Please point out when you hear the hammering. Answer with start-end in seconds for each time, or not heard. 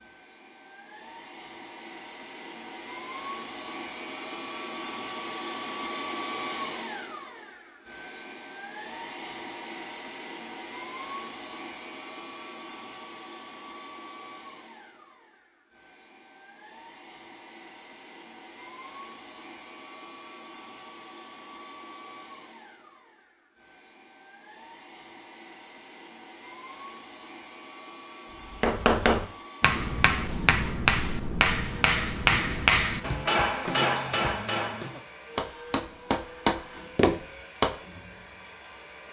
28.5-37.7.